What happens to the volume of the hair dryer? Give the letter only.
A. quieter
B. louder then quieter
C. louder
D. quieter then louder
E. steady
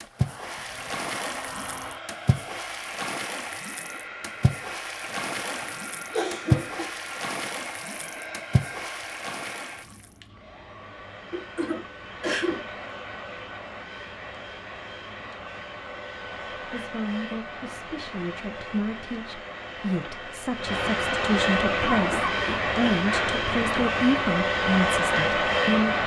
C.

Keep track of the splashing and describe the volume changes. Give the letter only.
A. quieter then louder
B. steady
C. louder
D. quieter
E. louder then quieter
E.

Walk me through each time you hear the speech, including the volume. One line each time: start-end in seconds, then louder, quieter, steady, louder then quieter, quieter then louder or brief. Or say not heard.
16.6-25.9 louder.